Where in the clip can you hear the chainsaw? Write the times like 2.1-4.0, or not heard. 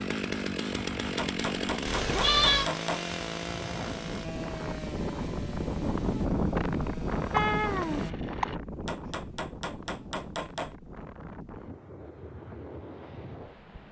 0.0-8.2.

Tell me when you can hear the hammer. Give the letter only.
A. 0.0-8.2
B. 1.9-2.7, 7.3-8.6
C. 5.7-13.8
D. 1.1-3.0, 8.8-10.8
D.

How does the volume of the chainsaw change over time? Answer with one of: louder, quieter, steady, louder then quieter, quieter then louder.
quieter.